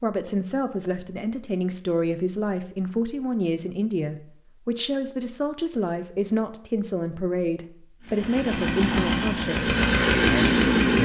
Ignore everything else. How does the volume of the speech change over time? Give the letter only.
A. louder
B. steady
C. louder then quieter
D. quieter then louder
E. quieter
B.